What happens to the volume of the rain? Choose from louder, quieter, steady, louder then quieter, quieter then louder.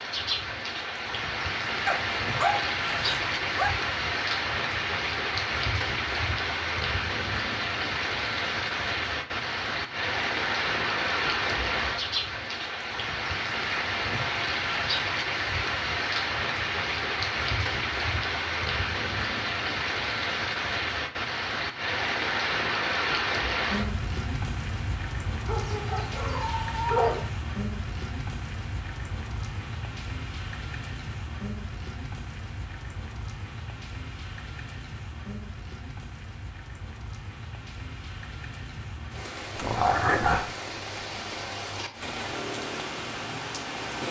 quieter.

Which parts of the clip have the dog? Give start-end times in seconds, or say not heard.
1.9-3.8, 25.4-27.2, 39.5-40.5.